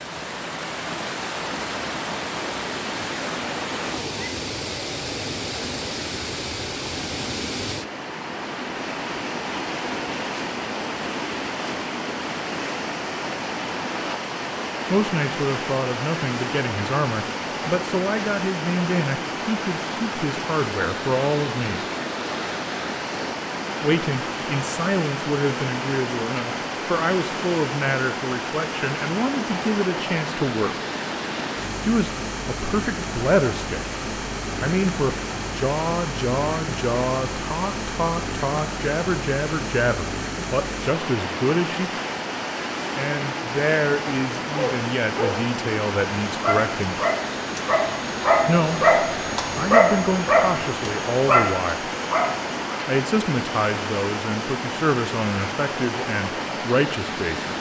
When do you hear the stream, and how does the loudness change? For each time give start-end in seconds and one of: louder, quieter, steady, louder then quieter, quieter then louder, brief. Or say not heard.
0.0-57.5 steady.